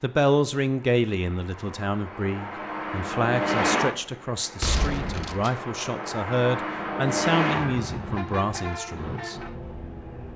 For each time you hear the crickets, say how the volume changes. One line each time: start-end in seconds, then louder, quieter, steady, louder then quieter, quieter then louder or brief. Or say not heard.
not heard.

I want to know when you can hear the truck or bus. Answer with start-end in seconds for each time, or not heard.
0.0-10.3.